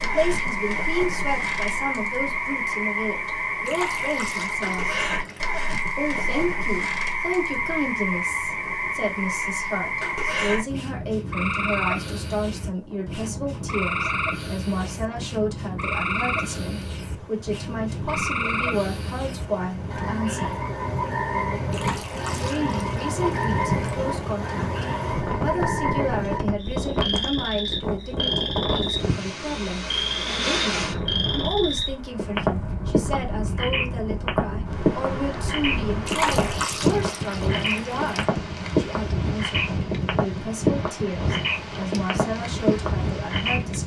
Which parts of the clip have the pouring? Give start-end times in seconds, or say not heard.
3.6-5.6, 21.7-24.0, 36.0-38.2.